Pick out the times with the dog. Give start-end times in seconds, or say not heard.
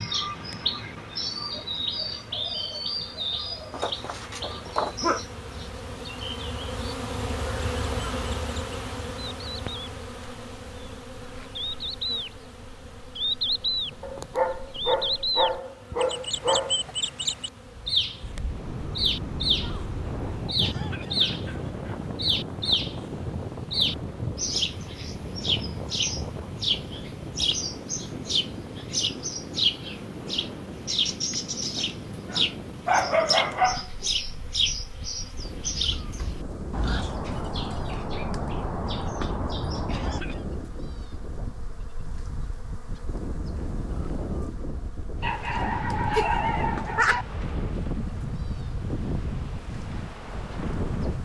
3.7-5.2, 14.0-16.9, 31.3-34.1, 45.2-47.2.